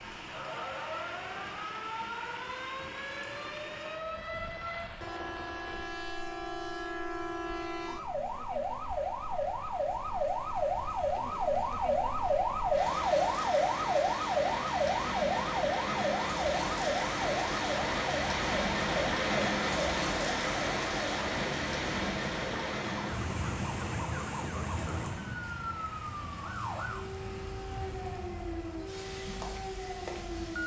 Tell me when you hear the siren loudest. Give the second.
13 s.